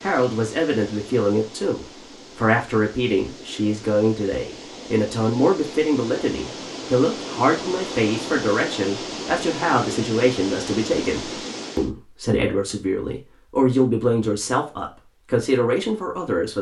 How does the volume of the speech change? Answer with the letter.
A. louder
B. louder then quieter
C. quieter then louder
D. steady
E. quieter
D.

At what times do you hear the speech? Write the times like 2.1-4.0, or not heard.
0.0-16.5.